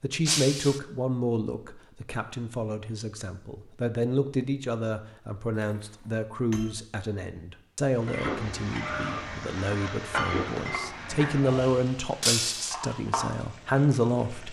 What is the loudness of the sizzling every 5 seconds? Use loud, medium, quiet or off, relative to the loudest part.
off, loud, loud.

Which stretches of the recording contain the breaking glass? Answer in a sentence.
The breaking glass can be heard from 0.2 to 0.8 s, from 5.5 to 6.8 s and from 12.2 to 12.8 s.